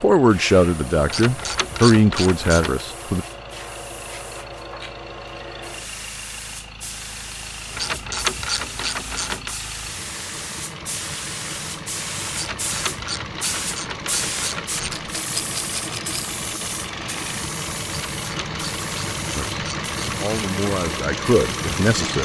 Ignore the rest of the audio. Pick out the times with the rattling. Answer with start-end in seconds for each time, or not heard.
14.9-16.4.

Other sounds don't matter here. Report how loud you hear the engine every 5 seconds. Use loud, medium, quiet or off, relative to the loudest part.
quiet, quiet, medium, loud, loud.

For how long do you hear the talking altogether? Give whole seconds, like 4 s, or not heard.
6 s.